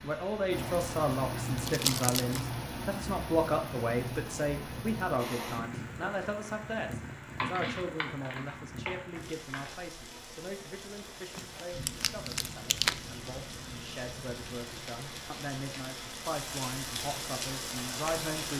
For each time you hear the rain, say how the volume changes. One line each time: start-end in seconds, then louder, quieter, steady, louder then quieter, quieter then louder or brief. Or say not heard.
0.0-18.5 quieter then louder.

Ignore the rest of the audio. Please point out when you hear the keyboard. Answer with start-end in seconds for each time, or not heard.
7.3-9.8.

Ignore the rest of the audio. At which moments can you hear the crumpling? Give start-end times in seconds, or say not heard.
1.6-2.5, 11.3-12.9.